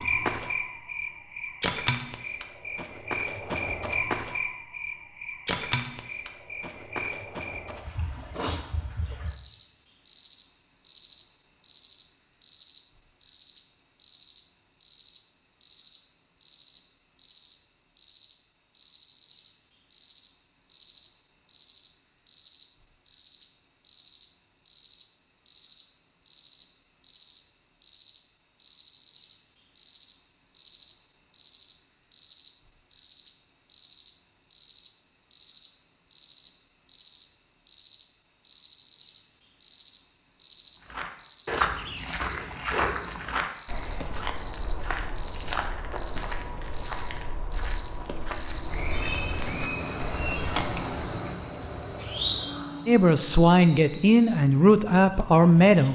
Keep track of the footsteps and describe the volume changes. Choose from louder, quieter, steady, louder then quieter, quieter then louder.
quieter.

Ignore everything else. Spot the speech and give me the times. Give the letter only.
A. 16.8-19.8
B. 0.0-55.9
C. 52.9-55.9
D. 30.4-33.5
C.